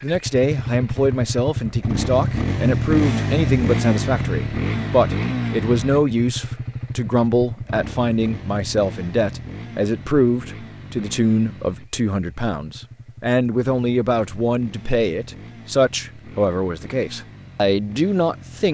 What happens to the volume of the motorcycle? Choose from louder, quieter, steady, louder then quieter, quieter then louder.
quieter.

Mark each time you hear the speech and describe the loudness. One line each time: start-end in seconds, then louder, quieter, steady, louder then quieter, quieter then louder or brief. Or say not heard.
0.0-18.6 steady.